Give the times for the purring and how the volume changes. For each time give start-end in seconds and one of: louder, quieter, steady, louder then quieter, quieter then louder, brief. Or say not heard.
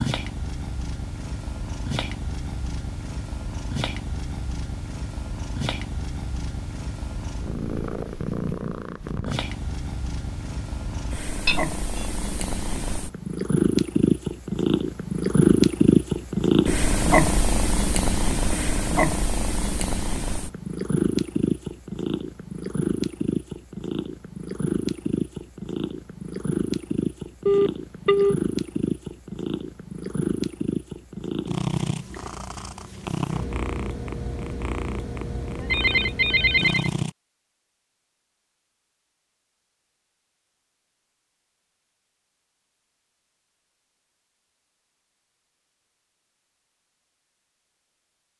0.0-37.1 louder then quieter.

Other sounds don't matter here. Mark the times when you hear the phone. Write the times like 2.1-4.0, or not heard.
11.4-12.1, 27.4-28.4, 35.5-36.9.